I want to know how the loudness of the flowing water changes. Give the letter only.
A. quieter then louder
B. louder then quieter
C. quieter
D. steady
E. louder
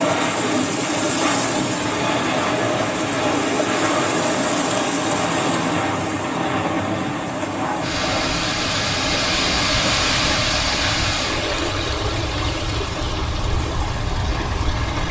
B.